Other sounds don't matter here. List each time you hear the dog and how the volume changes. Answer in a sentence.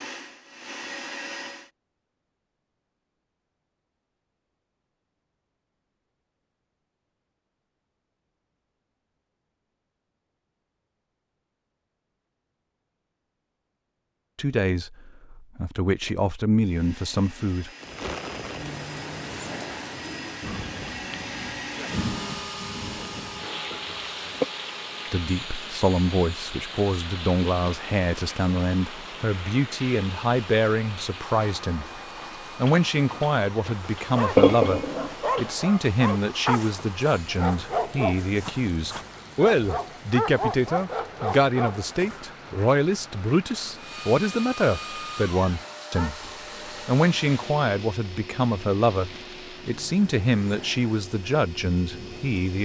The dog can be heard from 34.1 to 42.2 s, at a steady volume.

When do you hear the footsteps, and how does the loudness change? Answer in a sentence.
The footsteps can't be heard in this clip.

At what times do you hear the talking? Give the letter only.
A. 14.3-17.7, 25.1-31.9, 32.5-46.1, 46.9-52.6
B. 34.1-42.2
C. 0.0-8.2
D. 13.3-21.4
A.